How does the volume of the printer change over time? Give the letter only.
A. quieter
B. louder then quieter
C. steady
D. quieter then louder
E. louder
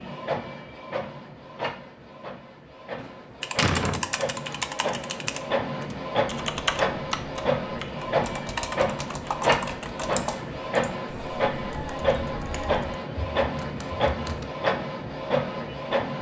E.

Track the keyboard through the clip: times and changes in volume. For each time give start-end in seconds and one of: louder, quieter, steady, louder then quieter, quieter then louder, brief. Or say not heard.
3.4-14.5 quieter.